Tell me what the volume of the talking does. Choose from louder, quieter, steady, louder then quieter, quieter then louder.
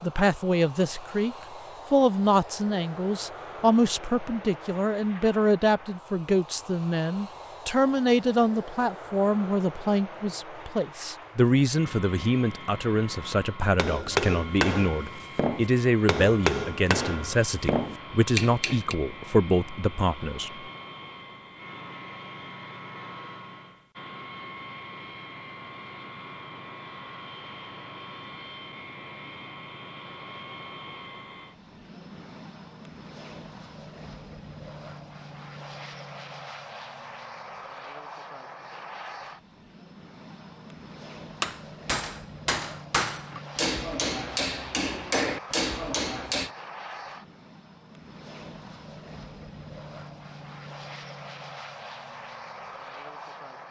steady.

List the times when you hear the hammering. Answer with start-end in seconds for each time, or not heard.
13.8-18.9, 41.4-46.5.